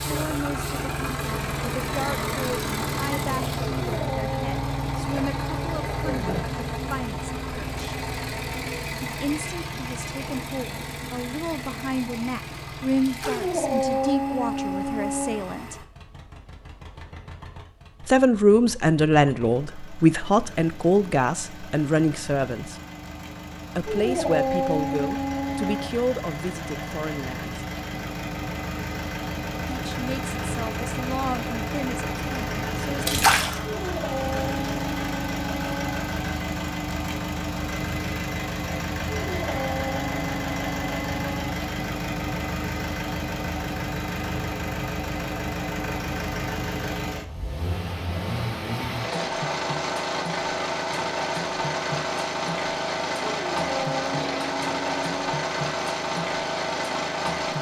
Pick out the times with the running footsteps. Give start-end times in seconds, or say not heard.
not heard.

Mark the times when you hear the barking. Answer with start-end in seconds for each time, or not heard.
3.8-5.8, 13.2-15.4, 23.9-25.9, 33.6-36.1, 39.2-41.6, 53.4-55.4.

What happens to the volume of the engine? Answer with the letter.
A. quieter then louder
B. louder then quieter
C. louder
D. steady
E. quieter
A.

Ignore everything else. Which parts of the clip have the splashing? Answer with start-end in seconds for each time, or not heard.
13.1-13.6, 33.0-33.6.